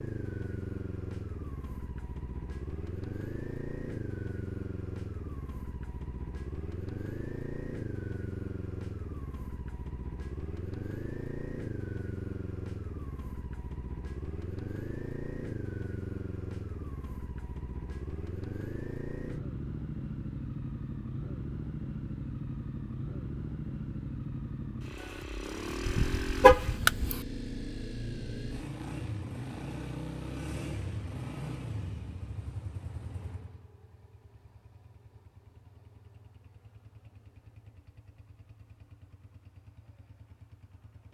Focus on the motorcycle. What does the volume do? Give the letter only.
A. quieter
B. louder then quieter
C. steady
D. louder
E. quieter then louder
A.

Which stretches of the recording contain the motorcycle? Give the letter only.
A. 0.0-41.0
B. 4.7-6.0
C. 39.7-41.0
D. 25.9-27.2
A.